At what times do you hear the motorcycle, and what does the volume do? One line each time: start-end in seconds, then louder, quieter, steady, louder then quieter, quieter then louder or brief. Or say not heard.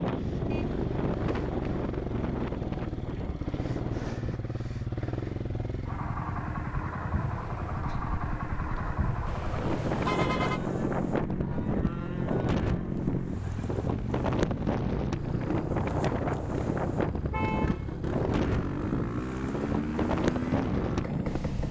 0.0-21.6 steady.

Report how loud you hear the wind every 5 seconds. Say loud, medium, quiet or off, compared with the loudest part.
loud, medium, loud, loud, loud.